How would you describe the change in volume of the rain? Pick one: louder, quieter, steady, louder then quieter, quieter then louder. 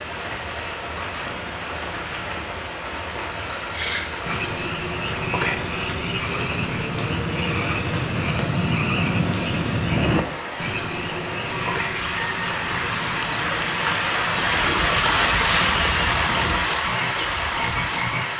louder.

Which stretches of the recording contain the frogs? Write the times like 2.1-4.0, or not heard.
3.7-18.2.